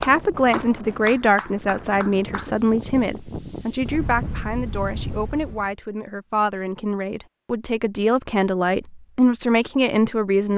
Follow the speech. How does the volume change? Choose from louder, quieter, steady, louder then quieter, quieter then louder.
quieter then louder.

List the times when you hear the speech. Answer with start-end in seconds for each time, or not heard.
0.0-10.5.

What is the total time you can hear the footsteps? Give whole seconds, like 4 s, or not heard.
not heard.